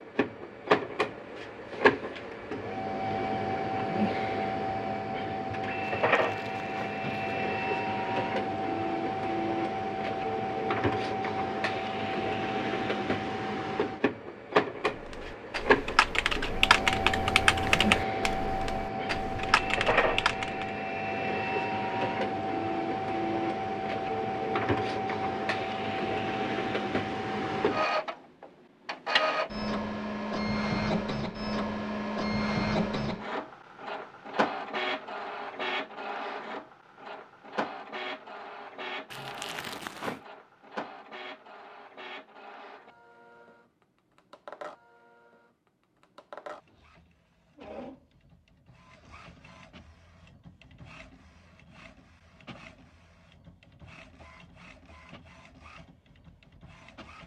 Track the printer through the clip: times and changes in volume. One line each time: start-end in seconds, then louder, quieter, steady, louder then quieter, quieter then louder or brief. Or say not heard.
0.0-57.2 quieter.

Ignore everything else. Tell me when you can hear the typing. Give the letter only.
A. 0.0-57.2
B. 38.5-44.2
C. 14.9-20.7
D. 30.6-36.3
C.